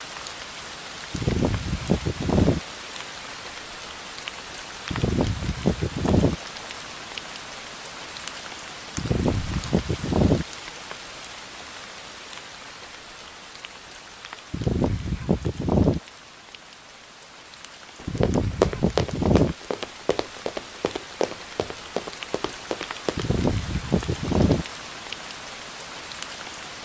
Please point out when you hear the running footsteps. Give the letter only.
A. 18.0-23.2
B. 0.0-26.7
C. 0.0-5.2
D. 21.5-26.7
A.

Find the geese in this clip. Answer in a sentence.
You can hear the geese from 1.1 to 2.6 s, from 4.9 to 6.3 s, from 8.9 to 10.4 s, from 14.5 to 16.0 s, from 18.1 to 19.6 s and from 23.1 to 24.6 s.